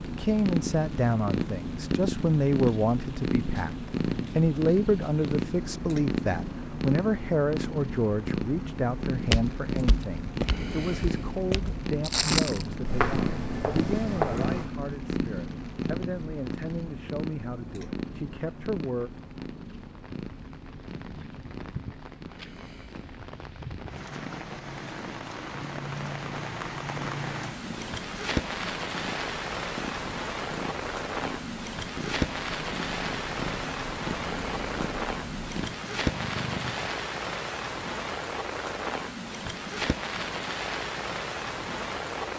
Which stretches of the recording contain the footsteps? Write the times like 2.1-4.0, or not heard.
9.1-14.7.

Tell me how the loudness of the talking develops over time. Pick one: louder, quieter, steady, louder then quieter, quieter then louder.
quieter.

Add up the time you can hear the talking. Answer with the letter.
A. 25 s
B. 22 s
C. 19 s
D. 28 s
C.